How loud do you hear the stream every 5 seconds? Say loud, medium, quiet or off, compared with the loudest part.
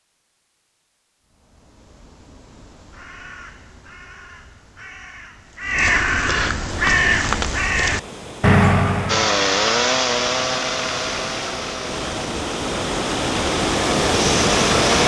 off, quiet, loud.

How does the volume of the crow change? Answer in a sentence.
The volume of the crow goes up.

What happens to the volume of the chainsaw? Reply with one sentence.
The loudness of the chainsaw goes down, then up.